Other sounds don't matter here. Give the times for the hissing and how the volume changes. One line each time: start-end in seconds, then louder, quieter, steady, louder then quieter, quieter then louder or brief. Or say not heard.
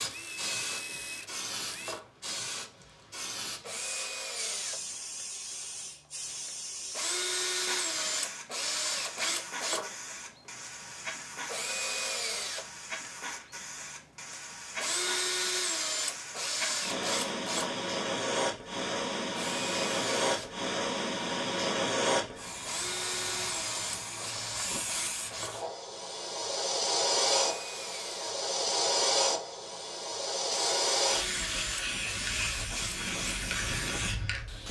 0.0-34.6 louder.